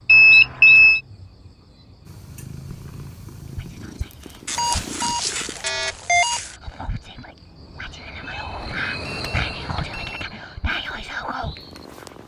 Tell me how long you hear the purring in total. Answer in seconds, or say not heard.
5 s.